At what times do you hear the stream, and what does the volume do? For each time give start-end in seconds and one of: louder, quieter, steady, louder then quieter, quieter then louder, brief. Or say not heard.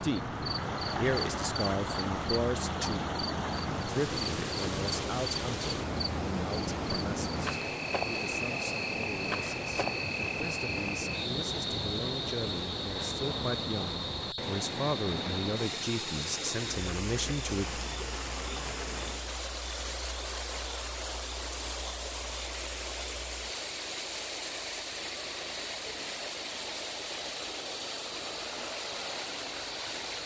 0.0-30.2 steady.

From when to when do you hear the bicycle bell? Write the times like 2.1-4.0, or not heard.
not heard.